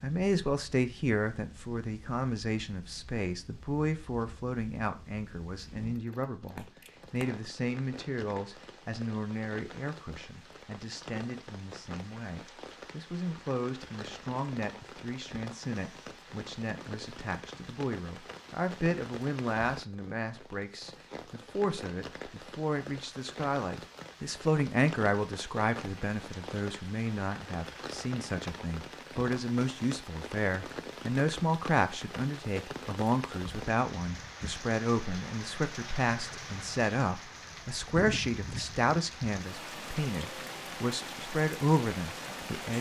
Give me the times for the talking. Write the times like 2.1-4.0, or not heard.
0.0-42.7.